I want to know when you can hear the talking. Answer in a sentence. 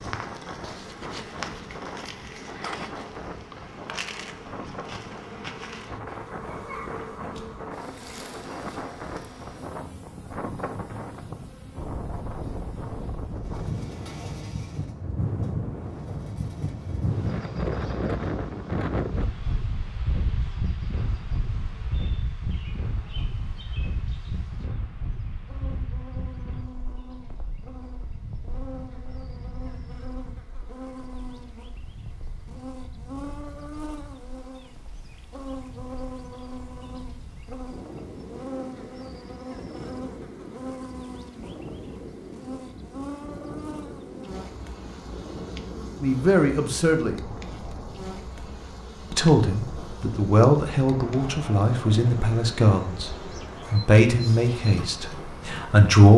The talking can be heard from 46.0 to 47.1 s, from 49.1 to 53.1 s and from 53.7 to 56.1 s.